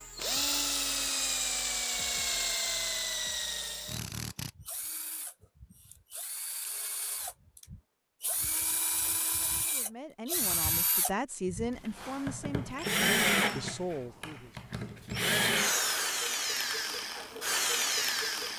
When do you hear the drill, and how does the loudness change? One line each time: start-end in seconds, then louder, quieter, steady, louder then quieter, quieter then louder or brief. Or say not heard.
0.0-18.5 quieter then louder.